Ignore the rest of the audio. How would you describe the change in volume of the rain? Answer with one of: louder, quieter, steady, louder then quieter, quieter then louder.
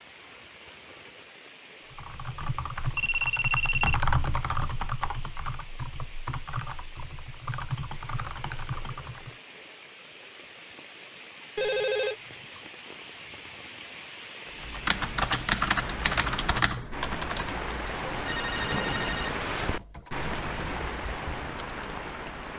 louder.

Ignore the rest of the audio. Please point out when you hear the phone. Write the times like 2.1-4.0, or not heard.
3.0-4.0, 11.6-12.6, 18.2-19.9.